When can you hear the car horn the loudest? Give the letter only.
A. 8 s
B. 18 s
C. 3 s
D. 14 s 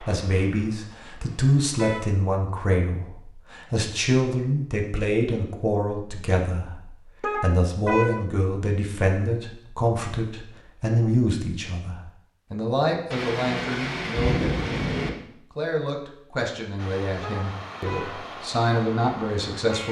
A.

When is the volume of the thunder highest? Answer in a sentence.
The volume of the thunder peaks at 14 seconds.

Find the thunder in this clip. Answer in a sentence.
You can hear the thunder from 13.1 to 15.1 s.